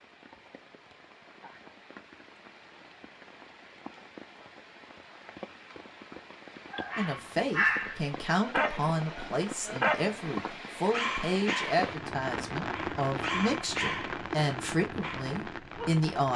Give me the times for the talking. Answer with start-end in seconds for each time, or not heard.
7.0-16.3.